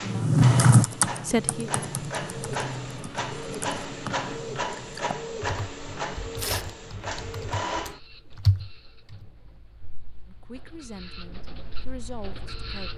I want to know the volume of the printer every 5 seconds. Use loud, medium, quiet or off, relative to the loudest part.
loud, loud, medium.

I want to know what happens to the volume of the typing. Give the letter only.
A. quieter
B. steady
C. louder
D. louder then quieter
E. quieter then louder
E.